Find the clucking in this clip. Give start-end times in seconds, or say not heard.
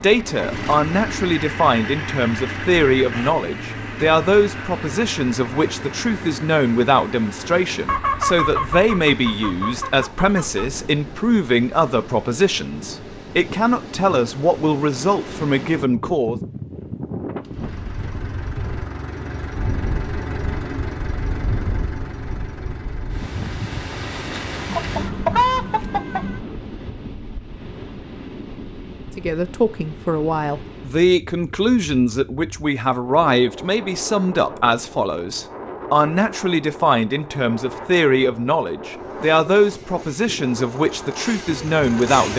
7.8-10.7, 24.6-26.4.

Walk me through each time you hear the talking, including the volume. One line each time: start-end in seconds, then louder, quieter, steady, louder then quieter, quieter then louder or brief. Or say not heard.
0.0-16.4 steady
29.1-42.3 steady.